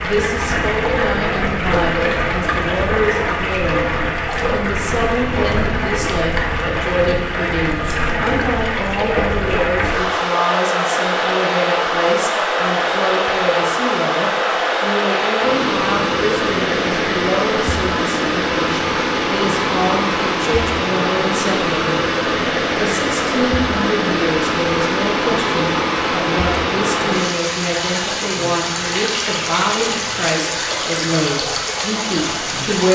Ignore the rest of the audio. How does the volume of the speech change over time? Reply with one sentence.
The loudness of the speech stays about the same.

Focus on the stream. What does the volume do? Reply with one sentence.
The volume of the stream stays about the same.